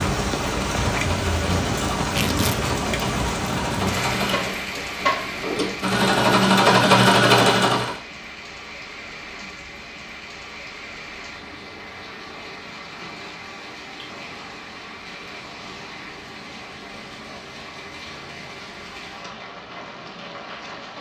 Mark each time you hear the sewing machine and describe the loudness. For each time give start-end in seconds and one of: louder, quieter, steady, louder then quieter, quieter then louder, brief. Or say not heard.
0.0-8.0 louder.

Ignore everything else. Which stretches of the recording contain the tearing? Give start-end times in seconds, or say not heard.
2.0-2.7.